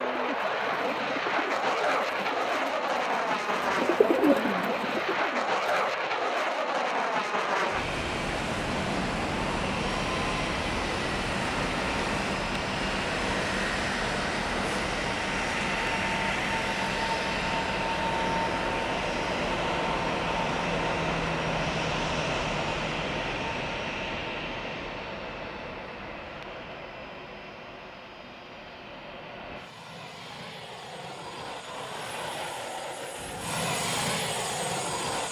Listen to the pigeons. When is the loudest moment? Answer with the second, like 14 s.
4 s.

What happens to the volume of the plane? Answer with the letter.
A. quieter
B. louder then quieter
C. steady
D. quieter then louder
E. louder
A.